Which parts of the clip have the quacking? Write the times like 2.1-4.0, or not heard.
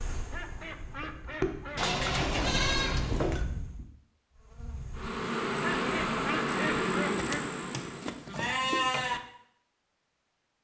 0.3-1.9, 5.6-7.5.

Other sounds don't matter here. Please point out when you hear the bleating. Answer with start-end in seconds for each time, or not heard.
1.8-3.5, 7.2-9.2.